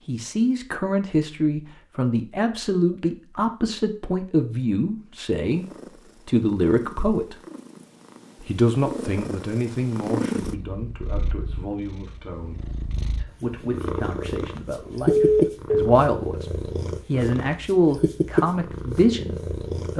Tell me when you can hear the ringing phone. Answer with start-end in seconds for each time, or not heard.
15.1-15.9.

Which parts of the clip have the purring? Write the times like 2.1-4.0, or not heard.
5.4-19.9.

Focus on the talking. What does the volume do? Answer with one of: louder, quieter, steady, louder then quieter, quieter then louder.
quieter then louder.